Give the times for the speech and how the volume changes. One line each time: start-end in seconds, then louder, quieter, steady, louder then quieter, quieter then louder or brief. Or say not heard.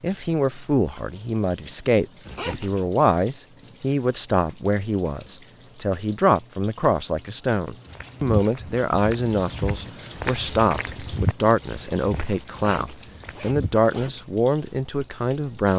0.0-15.7 steady.